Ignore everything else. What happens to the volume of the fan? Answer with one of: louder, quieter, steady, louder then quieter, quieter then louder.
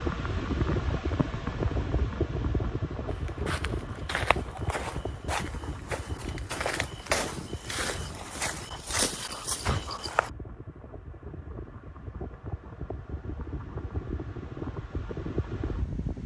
quieter then louder.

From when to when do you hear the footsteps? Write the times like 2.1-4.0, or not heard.
3.0-10.3.